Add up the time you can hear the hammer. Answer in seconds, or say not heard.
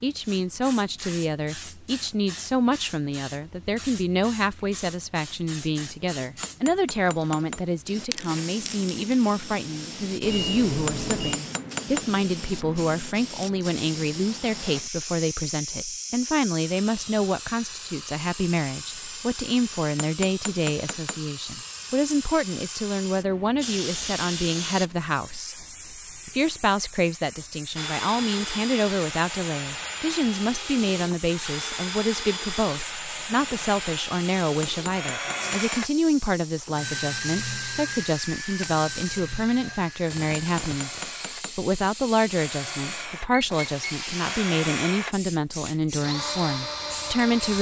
6 s.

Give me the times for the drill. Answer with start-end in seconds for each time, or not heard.
27.8-47.5.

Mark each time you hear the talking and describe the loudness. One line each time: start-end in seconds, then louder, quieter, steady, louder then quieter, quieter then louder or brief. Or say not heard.
0.0-47.5 steady.